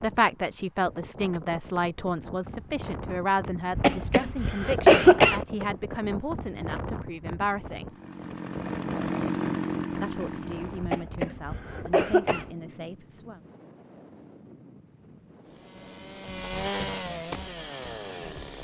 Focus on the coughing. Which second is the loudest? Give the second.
5 s.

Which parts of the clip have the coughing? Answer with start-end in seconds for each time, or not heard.
3.8-5.4, 10.8-12.4.